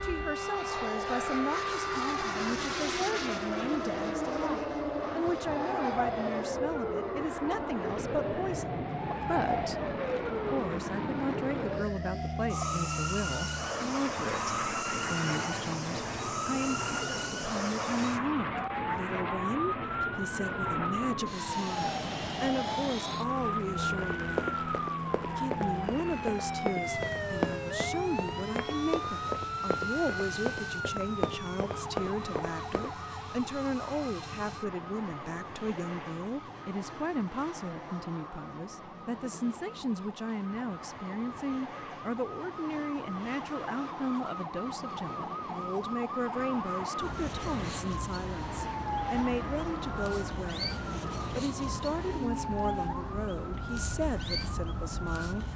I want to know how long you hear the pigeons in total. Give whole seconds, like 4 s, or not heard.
not heard.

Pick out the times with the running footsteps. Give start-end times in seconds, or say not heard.
23.9-32.9.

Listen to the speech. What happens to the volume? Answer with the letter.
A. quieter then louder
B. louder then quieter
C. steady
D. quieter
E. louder
C.